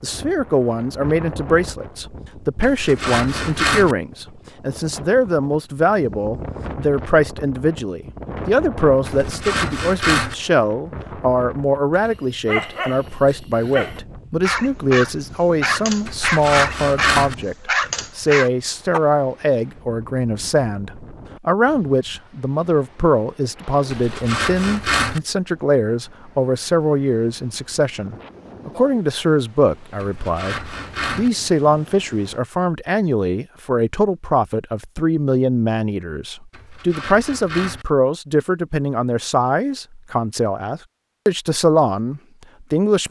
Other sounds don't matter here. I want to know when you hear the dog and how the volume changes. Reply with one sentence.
The dog can be heard from 11.9 to 19.0 s, getting louder.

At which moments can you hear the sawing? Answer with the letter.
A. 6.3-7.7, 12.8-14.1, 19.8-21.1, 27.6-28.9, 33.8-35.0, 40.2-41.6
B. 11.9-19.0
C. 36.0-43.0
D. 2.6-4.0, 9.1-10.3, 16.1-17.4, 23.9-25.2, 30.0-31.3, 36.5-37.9
D.